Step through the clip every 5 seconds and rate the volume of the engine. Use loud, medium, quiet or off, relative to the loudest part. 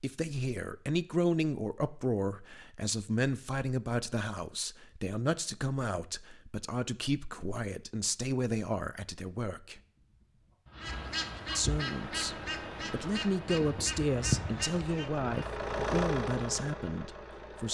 off, off, medium, loud.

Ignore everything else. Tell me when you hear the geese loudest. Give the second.
14 s.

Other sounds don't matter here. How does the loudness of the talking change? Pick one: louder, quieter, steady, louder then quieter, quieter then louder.
steady.